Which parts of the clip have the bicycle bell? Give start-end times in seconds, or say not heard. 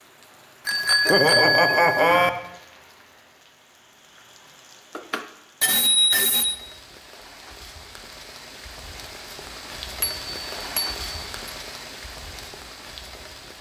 0.7-2.3, 5.0-6.6, 10.0-11.2.